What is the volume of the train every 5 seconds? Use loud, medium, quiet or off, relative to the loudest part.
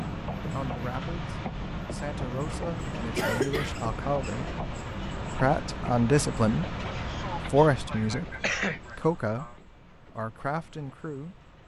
loud, loud, quiet.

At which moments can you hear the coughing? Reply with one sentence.
The coughing can be heard from 3.1 to 3.8 s and from 6.8 to 9.6 s.